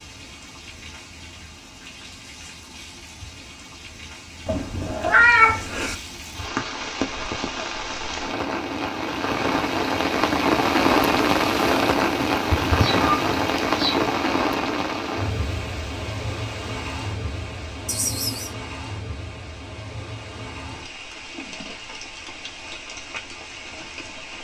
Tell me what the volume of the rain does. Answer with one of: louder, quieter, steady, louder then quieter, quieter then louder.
louder then quieter.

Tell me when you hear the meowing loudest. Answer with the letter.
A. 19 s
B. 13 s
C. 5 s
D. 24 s
C.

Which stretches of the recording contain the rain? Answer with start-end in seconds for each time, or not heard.
0.0-24.3.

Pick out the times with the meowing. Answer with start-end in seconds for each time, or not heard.
4.5-6.0, 12.4-14.1, 17.9-18.5.